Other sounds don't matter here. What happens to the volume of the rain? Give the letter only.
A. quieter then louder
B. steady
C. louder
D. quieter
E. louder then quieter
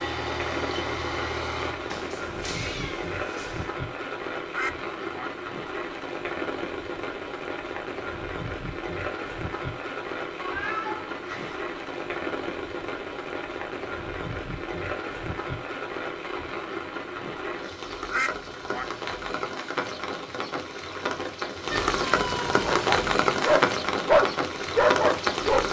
C.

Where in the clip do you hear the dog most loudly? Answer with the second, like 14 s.
24 s.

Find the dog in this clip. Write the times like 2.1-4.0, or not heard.
22.5-25.6.